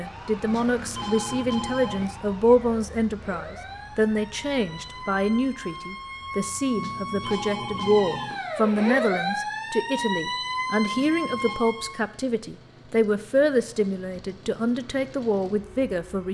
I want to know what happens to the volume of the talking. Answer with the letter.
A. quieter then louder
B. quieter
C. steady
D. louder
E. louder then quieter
C.